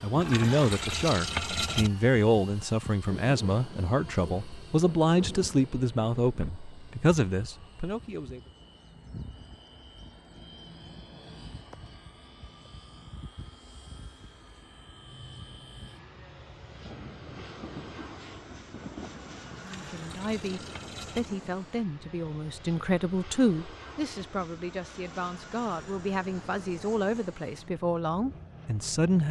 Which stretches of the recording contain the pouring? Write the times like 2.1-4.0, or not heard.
0.1-1.9, 19.5-21.3.